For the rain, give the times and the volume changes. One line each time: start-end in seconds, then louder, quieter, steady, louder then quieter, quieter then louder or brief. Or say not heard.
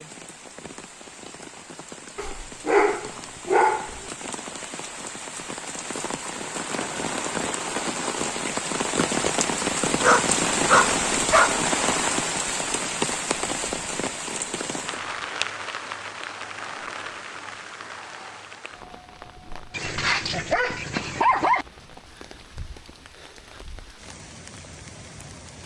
0.0-25.6 louder then quieter.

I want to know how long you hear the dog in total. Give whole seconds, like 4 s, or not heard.
5 s.